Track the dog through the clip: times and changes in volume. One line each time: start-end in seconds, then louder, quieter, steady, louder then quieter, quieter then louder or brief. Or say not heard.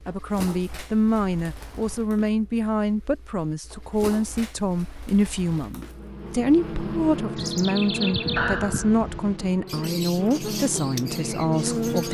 not heard.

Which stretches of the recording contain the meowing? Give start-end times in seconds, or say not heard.
8.3-9.6.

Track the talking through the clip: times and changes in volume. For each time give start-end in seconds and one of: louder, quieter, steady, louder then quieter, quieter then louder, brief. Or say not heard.
0.1-12.0 steady.